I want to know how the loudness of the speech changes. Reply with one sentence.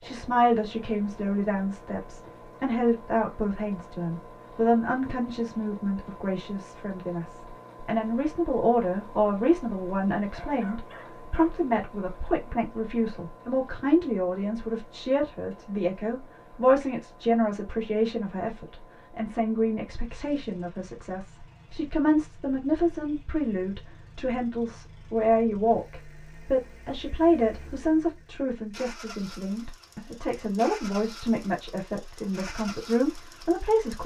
The loudness of the speech stays about the same.